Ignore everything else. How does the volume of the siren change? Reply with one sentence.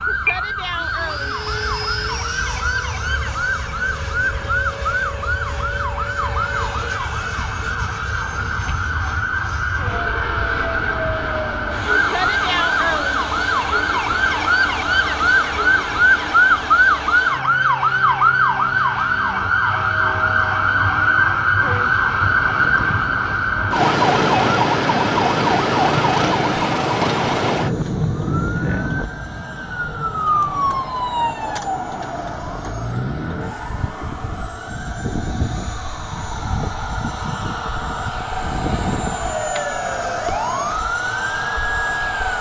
The loudness of the siren goes up, then down.